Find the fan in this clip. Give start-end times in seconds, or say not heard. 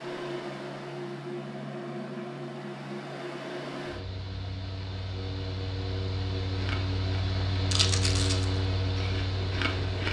0.0-10.0.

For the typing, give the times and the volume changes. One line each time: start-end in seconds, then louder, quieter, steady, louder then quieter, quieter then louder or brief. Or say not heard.
not heard.